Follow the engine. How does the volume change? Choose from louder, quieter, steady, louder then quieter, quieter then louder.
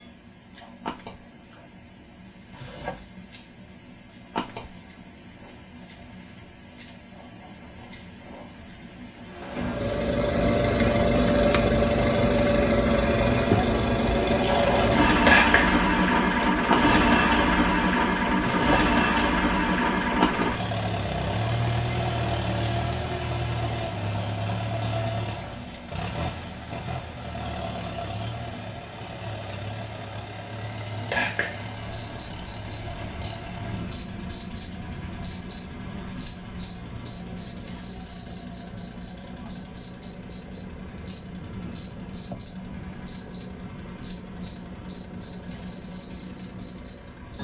quieter.